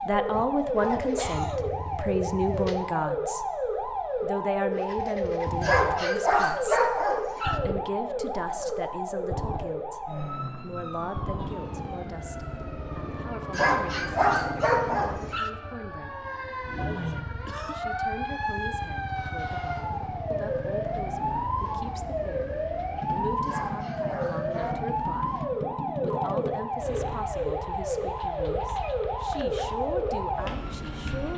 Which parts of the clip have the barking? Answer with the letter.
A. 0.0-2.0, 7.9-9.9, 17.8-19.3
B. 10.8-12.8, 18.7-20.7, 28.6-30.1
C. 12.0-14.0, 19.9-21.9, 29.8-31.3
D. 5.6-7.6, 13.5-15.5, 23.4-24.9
D.